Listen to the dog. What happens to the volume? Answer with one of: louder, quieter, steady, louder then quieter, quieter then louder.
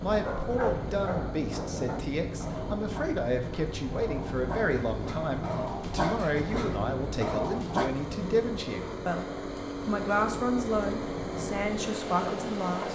quieter then louder.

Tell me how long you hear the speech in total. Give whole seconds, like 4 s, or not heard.
13 s.